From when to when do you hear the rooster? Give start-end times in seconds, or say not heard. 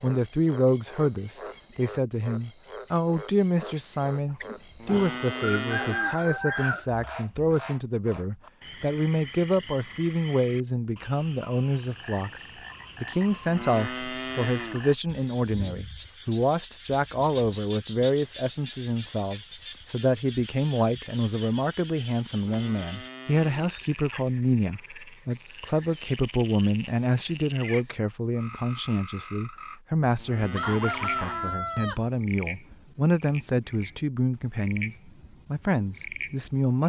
4.0-7.5, 30.6-32.0.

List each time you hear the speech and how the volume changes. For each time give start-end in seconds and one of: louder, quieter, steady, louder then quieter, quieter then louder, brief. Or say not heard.
0.0-36.8 steady.